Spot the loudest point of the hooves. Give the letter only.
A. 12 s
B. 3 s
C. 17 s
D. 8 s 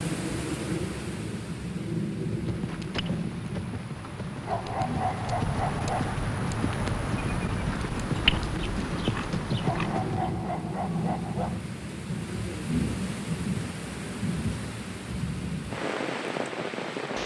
D.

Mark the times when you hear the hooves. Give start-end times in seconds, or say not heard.
2.2-10.4.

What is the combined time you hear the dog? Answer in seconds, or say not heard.
4 s.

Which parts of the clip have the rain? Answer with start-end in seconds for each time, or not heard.
0.0-17.2.